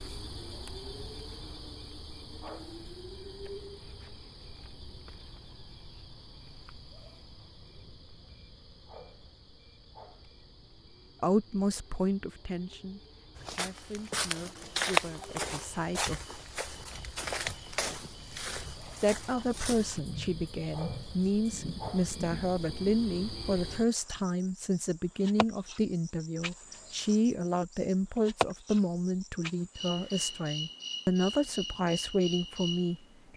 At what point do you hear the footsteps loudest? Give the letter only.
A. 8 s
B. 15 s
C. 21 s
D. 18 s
B.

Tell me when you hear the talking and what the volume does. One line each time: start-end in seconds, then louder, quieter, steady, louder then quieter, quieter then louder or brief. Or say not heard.
11.2-16.2 quieter
18.9-33.0 steady.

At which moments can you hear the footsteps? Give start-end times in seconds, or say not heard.
13.3-20.0.